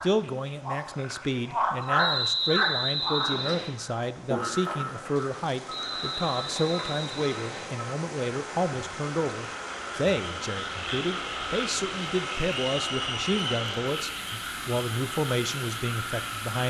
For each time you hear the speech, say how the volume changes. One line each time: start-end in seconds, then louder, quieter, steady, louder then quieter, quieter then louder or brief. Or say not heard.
0.0-16.6 steady.